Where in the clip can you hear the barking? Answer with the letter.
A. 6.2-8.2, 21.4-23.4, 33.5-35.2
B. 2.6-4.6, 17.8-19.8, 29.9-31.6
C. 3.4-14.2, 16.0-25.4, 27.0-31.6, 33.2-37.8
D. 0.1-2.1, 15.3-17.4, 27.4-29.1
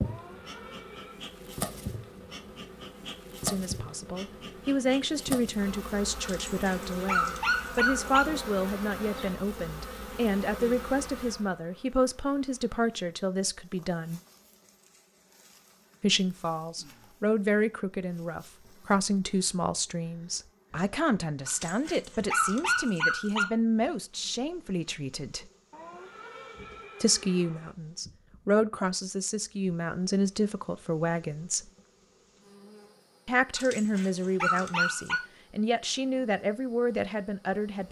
A.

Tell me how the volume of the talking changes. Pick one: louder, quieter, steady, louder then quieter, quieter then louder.
steady.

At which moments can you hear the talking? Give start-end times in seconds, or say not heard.
3.4-14.2, 16.0-25.4, 27.0-31.6, 33.2-37.8.